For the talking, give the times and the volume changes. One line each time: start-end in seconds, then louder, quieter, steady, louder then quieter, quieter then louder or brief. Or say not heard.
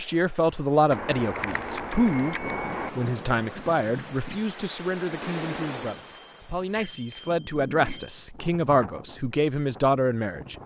0.0-10.6 quieter then louder.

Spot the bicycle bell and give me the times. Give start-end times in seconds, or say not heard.
0.9-2.9, 5.9-8.2.